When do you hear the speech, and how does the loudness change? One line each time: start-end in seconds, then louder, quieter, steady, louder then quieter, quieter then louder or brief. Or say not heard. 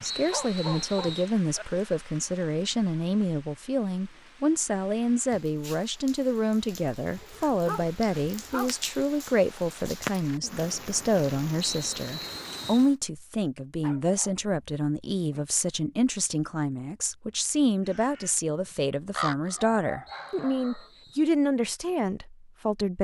0.0-22.9 steady.